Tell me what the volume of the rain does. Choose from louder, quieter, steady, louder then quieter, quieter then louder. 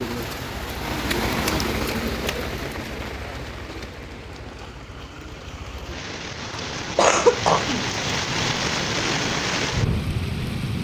quieter then louder.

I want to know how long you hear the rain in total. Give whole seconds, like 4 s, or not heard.
11 s.